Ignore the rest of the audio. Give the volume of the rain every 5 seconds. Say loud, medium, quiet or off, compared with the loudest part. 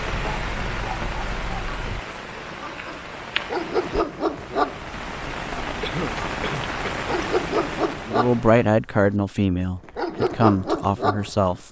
loud, loud, off.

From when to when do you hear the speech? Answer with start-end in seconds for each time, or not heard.
8.1-11.6.